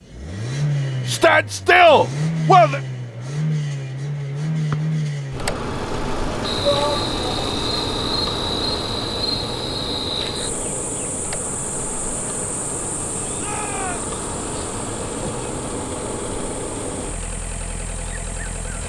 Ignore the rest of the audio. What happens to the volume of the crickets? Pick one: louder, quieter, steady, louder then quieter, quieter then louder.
quieter.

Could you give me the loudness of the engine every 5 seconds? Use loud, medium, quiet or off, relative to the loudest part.
loud, loud, medium, medium.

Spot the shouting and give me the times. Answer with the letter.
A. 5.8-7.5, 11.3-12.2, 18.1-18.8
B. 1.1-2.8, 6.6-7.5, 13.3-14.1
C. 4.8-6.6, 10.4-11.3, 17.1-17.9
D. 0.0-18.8
B.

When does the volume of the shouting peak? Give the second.
2 s.